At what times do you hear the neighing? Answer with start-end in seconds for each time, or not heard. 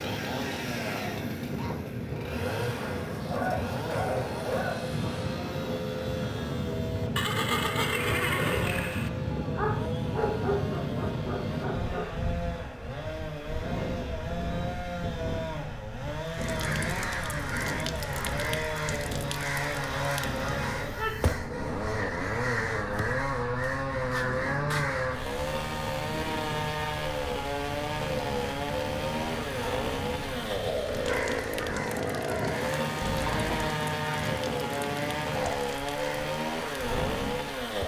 7.2-9.1, 33.0-33.8.